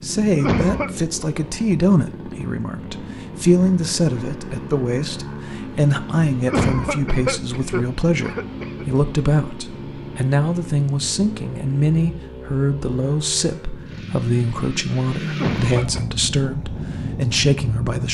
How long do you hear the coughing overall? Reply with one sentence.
The coughing can be heard for 4 seconds in total.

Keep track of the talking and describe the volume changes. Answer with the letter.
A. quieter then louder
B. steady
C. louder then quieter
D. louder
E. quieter
B.